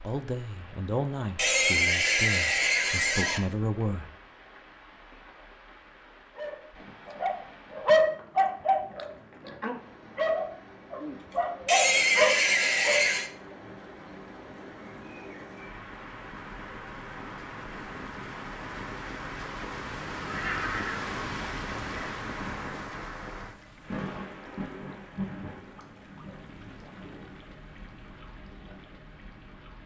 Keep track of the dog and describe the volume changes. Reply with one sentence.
The volume of the dog goes down, then up.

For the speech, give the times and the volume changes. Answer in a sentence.
The speech can be heard from 0.0 to 4.1 s, getting quieter then louder.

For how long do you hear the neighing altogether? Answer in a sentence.
The neighing can be heard for 6 seconds in total.